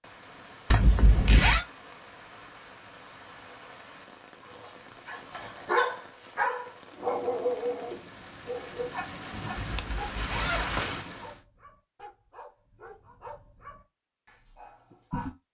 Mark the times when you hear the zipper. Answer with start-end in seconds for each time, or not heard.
0.7-1.6, 9.6-10.8.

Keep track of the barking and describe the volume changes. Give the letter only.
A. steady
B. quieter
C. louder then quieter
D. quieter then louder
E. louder
D.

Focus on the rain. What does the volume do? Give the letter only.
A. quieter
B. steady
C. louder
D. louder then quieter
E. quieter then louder
C.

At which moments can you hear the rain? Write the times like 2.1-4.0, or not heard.
0.0-11.4.